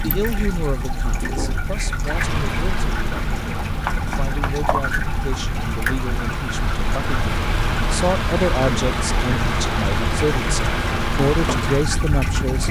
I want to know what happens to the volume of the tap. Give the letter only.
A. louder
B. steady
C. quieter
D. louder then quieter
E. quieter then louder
B.